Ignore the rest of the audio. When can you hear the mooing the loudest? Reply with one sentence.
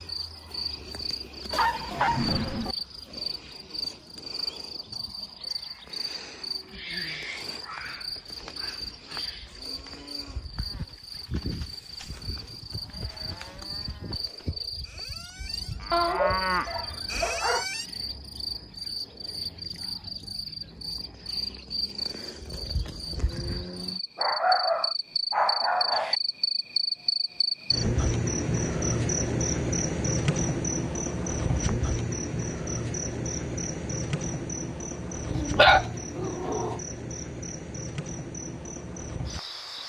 The volume of the mooing peaks at 16 seconds.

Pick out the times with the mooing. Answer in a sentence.
You can hear the mooing from 9.4 to 17.9 s.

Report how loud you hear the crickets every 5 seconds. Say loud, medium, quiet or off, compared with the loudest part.
medium, medium, medium, medium, medium, loud, loud, medium.